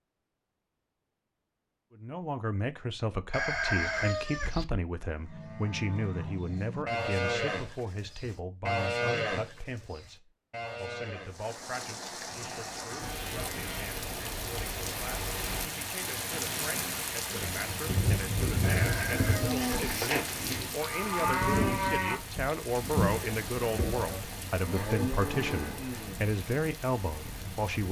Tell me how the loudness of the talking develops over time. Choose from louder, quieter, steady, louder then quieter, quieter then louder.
quieter then louder.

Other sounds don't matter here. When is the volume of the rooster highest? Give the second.
4 s.